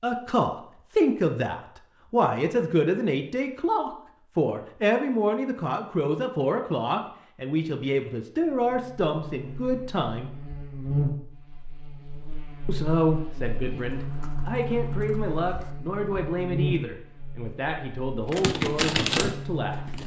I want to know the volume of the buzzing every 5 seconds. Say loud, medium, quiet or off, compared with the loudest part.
off, medium, loud, loud.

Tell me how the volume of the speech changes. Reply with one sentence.
The loudness of the speech goes down.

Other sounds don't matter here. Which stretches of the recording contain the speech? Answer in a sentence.
You can hear the speech from 0.0 to 10.3 s and from 12.7 to 19.9 s.